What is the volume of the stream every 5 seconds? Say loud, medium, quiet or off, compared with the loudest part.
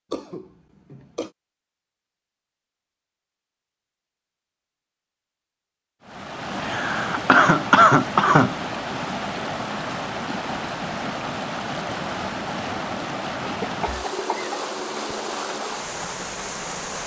off, loud, loud, loud.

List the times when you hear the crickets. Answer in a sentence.
You can't hear the crickets here.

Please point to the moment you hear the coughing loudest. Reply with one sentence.
The loudest moment of the coughing is at 8 seconds.